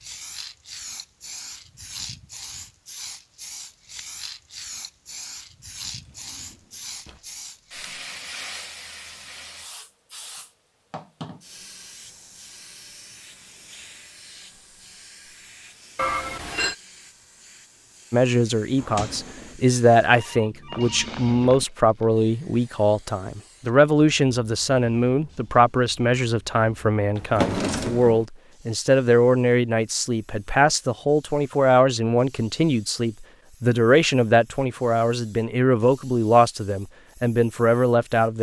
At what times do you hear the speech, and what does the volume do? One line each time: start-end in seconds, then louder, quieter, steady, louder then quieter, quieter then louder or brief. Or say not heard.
18.1-38.3 steady.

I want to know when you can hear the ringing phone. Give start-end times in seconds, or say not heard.
15.9-16.8, 20.1-21.6.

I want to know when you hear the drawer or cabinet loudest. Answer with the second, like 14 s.
28 s.